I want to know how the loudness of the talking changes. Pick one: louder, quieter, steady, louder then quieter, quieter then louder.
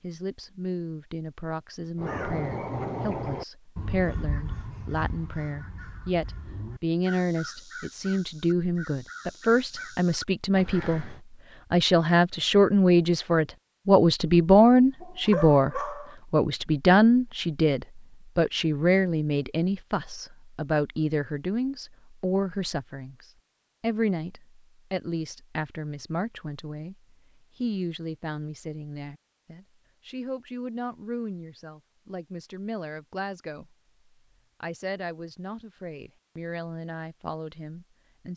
louder then quieter.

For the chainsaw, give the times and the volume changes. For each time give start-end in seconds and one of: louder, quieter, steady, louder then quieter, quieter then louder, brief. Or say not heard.
not heard.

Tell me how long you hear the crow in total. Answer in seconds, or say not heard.
9 s.